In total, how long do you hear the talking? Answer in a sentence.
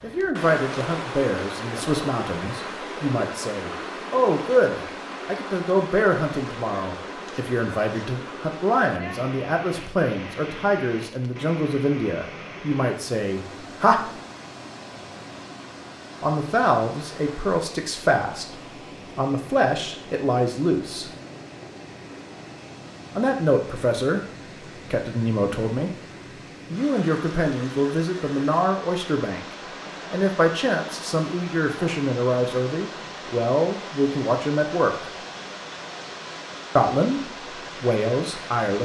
The talking can be heard for 32 seconds in total.